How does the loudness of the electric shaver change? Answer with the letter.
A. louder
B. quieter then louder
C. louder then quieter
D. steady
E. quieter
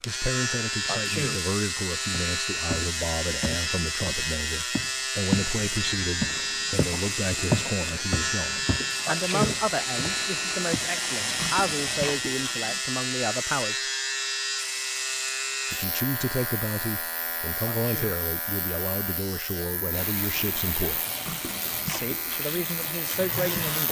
E.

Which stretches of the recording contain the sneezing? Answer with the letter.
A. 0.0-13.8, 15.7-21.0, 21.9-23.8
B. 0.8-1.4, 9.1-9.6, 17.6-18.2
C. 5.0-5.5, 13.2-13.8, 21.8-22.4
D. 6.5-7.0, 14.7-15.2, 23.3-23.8
B.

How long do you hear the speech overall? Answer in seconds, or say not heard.
21 s.